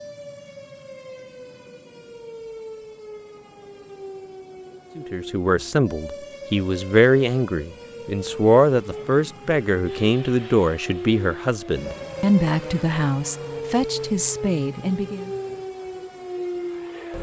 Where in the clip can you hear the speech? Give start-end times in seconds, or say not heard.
5.0-15.3.